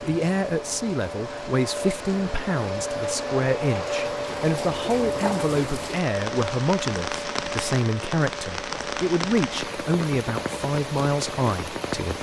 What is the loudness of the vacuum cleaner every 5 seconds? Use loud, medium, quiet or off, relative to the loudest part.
loud, loud, medium.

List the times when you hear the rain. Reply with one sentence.
The rain can be heard from 0.0 to 12.1 s.